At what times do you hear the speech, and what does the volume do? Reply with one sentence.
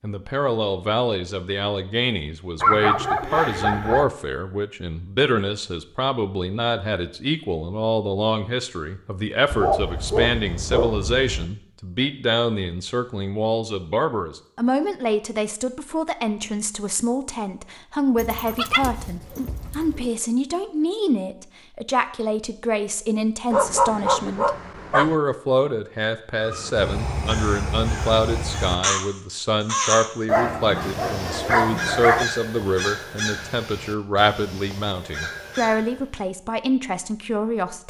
The speech can be heard from 0.0 to 37.8 s, at a steady volume.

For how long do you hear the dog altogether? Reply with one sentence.
The dog can be heard for 9 seconds in total.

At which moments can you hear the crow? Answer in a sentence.
You can hear the crow from 26.4 to 30.1 s and from 30.8 to 36.2 s.